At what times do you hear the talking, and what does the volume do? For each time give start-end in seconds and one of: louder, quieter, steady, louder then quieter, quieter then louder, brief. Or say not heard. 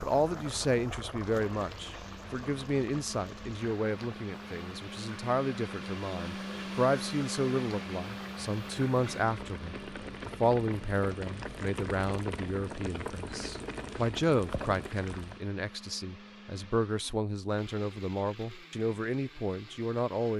0.0-20.3 steady.